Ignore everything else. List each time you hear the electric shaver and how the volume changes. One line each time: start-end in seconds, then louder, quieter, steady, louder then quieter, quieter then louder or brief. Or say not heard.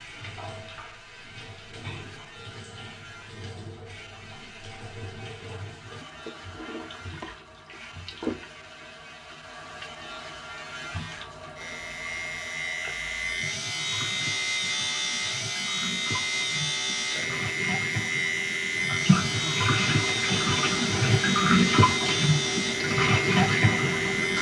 0.0-24.3 louder.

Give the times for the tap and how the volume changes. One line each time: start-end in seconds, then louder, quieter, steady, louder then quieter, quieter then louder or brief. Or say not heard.
0.0-24.3 louder.